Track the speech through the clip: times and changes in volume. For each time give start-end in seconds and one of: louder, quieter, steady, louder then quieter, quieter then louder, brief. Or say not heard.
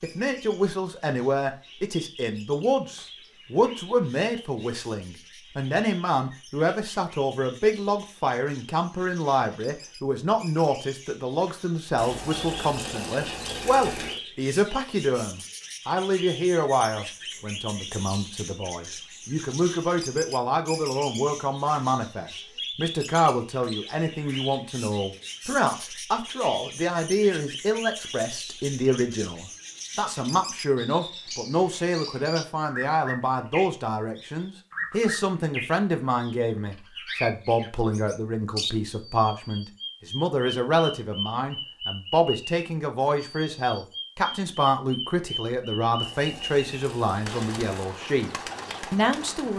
0.0-48.3 steady
48.9-49.5 brief.